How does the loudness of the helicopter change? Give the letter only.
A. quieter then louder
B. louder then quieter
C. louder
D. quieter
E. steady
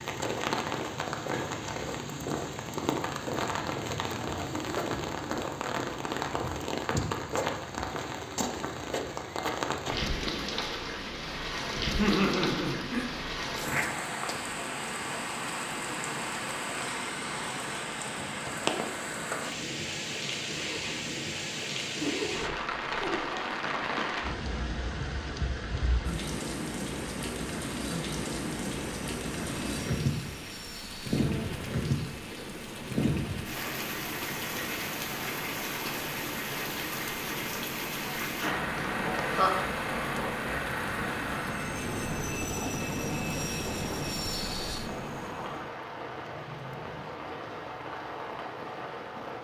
C.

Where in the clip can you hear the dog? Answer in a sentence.
The dog can't be heard in this clip.